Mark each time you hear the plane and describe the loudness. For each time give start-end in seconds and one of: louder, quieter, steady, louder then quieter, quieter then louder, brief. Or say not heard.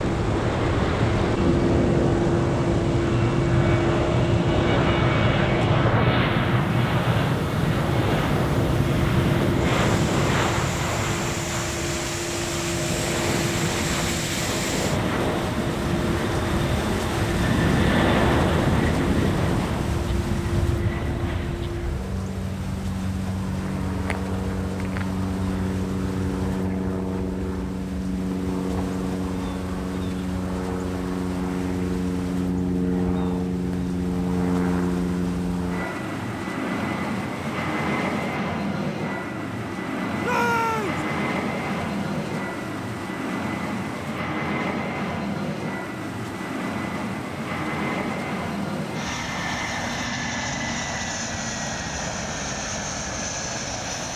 0.0-54.1 quieter.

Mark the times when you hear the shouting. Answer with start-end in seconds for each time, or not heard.
40.2-41.0.